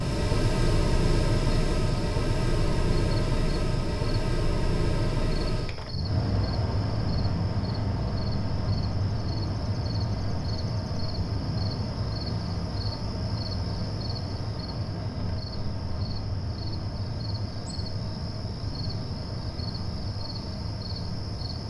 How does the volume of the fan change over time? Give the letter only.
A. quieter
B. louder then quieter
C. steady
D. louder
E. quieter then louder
A.